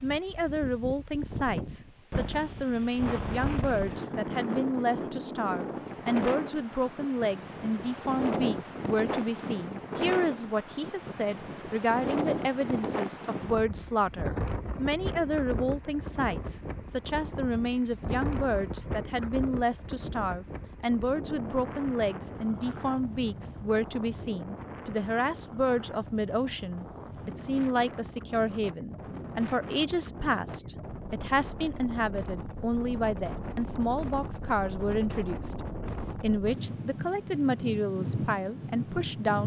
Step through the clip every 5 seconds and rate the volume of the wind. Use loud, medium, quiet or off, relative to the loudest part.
loud, loud, loud, loud, medium, medium, medium, loud.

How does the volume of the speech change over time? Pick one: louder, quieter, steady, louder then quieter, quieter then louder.
steady.